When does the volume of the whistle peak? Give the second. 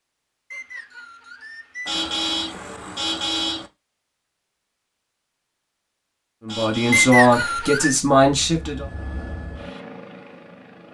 7 s.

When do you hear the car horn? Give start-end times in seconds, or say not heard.
1.9-3.7, 6.5-7.2.